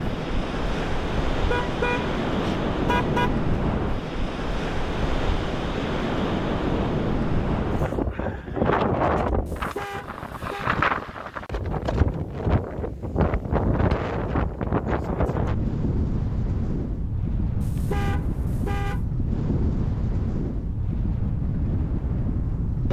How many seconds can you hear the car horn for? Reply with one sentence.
The car horn can be heard for 5 seconds in total.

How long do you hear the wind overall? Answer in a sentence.
You can hear the wind for 23 seconds altogether.